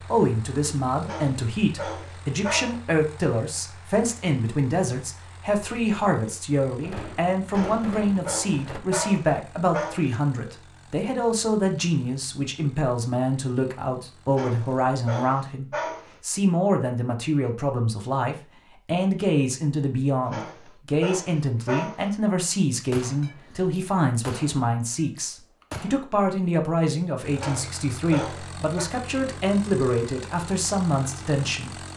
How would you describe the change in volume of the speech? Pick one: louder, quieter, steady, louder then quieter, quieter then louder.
steady.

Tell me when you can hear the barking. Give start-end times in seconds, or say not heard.
1.0-2.7, 7.5-10.2, 14.3-16.1, 20.2-22.1, 27.4-28.9.